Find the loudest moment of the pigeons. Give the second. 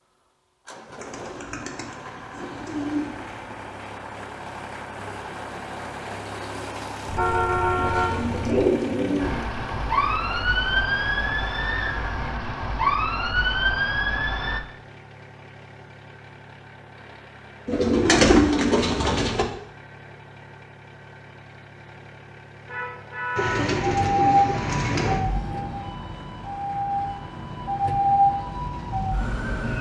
18 s.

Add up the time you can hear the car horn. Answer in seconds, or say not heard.
3 s.